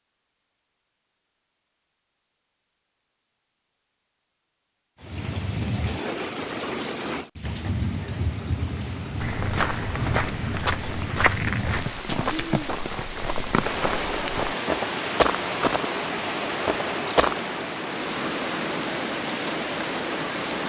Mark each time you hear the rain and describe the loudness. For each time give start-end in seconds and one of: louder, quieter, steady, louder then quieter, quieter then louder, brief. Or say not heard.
5.0-20.6 steady.